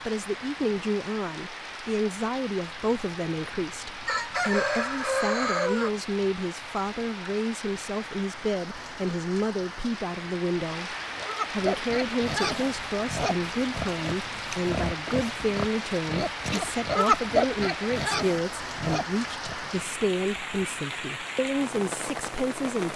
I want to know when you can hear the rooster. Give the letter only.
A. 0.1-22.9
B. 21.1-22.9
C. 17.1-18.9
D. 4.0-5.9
D.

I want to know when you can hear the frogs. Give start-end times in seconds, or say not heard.
not heard.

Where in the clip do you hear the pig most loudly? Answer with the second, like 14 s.
17 s.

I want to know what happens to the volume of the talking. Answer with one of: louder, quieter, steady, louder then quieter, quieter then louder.
steady.